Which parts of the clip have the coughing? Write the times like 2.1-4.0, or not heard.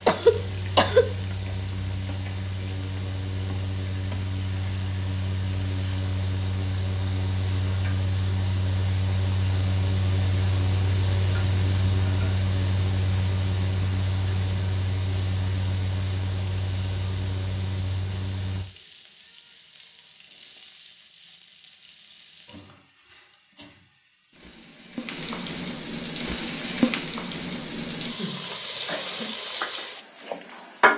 0.1-1.1, 28.0-29.4.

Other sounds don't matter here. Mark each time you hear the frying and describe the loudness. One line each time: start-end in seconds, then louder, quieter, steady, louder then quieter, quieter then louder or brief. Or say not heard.
0.0-30.9 louder.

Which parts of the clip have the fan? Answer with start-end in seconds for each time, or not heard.
0.0-18.6.